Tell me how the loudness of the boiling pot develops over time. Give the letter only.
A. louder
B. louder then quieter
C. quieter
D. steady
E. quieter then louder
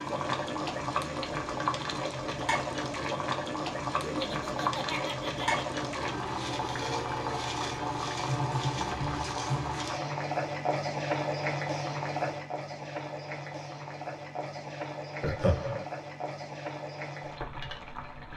C.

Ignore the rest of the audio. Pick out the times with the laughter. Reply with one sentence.
The laughter can be heard from 4.0 to 5.8 s and from 15.2 to 15.8 s.